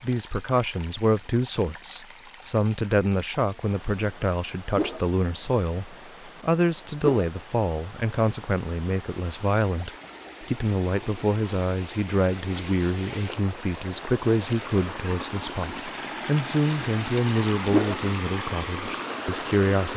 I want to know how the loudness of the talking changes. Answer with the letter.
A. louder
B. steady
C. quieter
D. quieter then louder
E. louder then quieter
B.